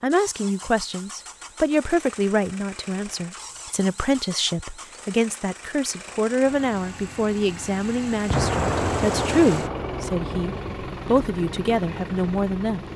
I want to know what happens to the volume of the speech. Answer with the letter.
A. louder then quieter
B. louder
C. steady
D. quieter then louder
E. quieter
C.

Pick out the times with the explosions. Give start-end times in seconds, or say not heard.
8.3-10.6.